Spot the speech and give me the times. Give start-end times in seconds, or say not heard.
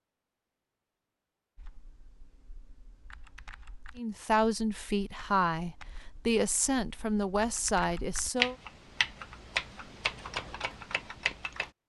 4.0-8.6.